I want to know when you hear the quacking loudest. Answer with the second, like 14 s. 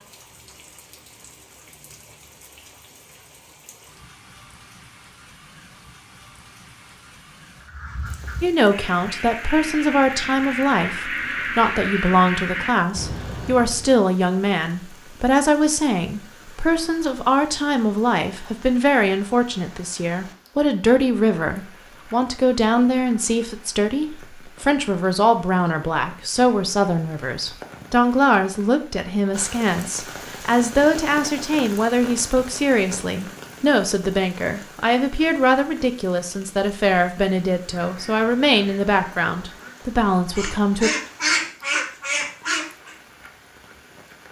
41 s.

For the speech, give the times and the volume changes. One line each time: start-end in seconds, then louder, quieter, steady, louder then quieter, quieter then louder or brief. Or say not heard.
8.4-40.9 steady.